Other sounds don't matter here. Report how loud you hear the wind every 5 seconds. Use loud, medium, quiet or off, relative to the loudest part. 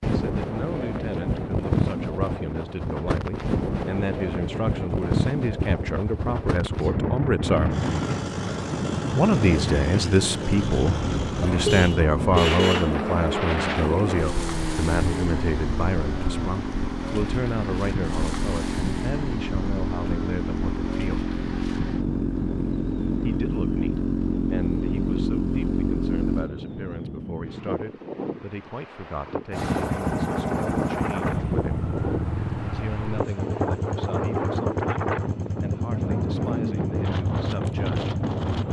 loud, loud, loud, medium, medium, medium, loud, loud.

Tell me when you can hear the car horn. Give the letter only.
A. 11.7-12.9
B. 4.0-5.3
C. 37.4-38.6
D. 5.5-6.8
A.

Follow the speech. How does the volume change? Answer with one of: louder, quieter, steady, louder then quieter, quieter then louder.
louder then quieter.